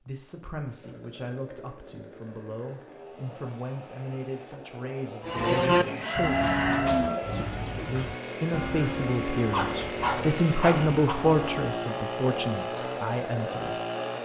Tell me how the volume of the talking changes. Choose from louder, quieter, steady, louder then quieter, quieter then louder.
louder.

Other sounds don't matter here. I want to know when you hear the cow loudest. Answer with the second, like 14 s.
6 s.